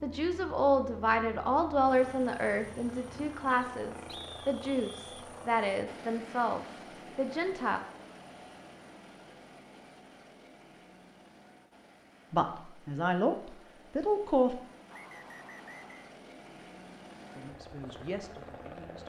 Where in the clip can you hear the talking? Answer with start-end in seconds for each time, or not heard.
0.0-7.8, 12.3-14.6, 17.4-19.0.